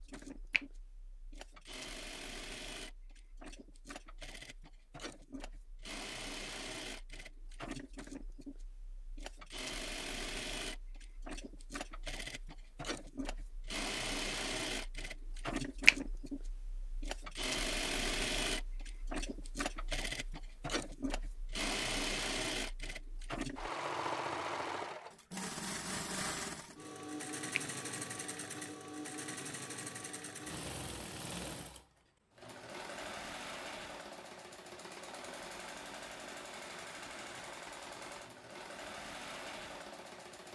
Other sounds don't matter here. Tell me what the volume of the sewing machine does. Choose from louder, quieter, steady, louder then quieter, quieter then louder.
louder then quieter.